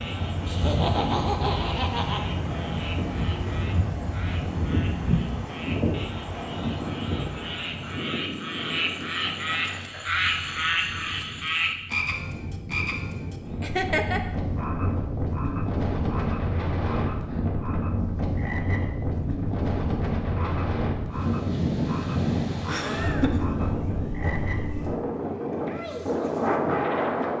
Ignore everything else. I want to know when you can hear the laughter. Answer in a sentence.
The laughter can be heard from 0.5 to 2.2 s, from 13.6 to 14.2 s and from 22.6 to 23.5 s.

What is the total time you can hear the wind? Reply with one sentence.
The wind can be heard for 27 seconds in total.